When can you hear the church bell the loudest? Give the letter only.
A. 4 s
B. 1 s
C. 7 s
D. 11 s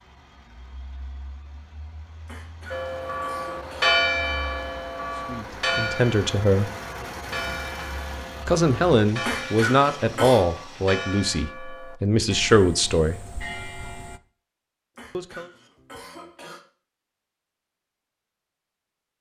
A.